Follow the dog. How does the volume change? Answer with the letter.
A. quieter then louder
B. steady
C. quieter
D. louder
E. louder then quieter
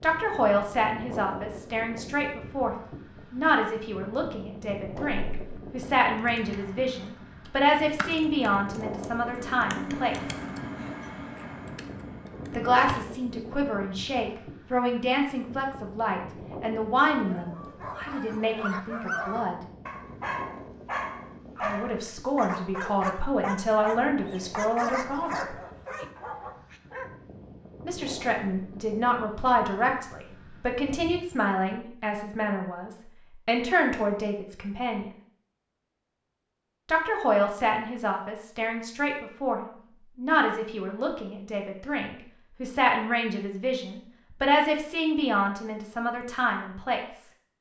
B.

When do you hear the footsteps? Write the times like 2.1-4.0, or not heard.
not heard.